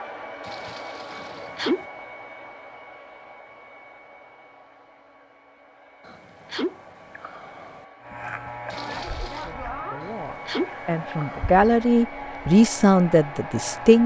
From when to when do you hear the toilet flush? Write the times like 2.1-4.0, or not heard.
0.4-1.6, 8.7-9.6.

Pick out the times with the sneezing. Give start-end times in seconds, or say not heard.
1.1-1.9, 6.0-7.8, 10.0-11.6.